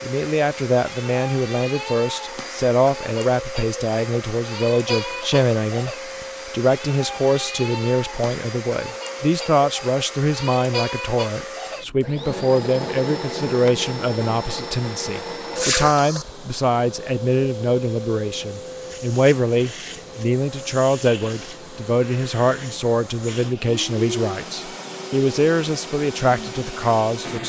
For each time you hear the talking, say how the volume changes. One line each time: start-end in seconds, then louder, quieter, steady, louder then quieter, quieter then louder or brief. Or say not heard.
0.0-27.4 steady.